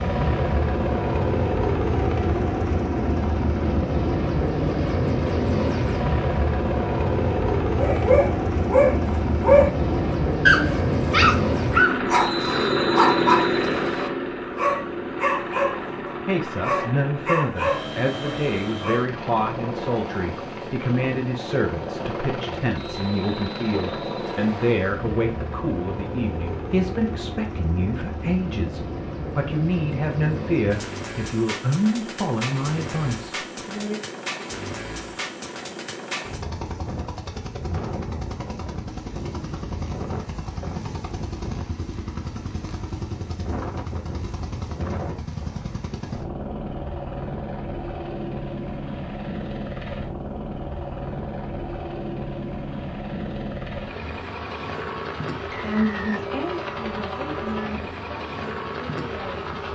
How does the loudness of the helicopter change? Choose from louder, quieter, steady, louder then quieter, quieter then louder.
quieter.